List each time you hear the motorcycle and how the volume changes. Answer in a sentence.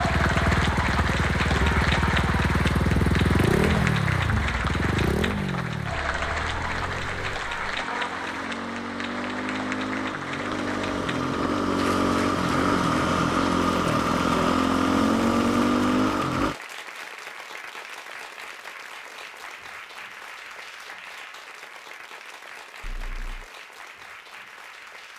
The motorcycle can be heard from 0.0 to 16.6 s, getting quieter then louder.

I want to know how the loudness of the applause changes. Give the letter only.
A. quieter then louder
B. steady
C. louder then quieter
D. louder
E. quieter
E.